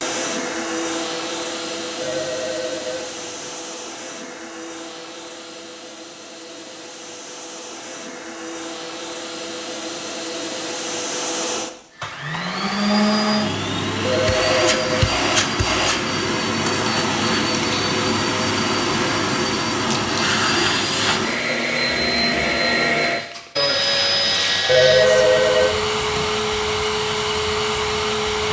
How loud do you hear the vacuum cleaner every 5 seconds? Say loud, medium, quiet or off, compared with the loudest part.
medium, quiet, loud, loud, loud, loud.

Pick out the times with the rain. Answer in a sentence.
The rain can't be heard in this clip.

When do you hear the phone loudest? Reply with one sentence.
The volume of the phone peaks at 25 seconds.